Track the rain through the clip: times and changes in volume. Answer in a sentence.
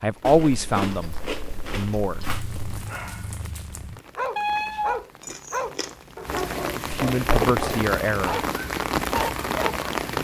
The rain can be heard from 0.0 to 10.1 s, getting louder.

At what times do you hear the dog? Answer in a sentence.
You can hear the dog from 2.2 to 9.9 s.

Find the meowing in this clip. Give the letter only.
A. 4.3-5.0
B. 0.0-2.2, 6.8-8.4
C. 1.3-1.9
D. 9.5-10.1
A.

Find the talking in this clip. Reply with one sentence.
The talking can be heard from 0.0 to 2.2 s and from 6.8 to 8.4 s.